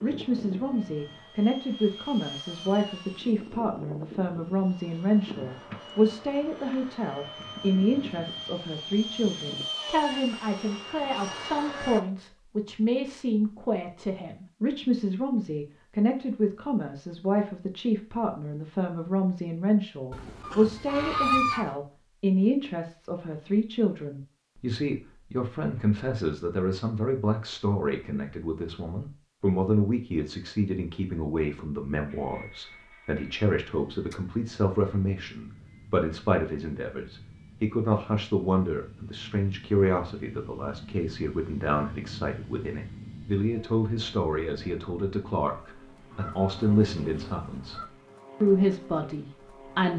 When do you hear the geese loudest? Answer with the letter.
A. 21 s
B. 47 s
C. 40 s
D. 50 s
A.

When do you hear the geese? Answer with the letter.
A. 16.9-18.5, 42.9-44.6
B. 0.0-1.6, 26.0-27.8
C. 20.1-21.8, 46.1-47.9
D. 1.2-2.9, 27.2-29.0
C.